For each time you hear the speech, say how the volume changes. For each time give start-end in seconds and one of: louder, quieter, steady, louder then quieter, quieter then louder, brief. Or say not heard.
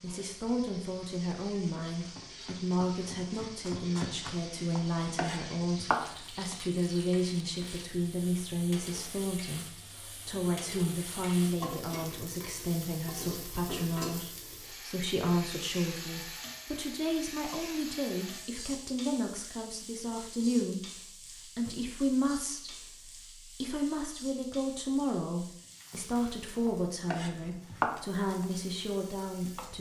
0.0-29.7 steady.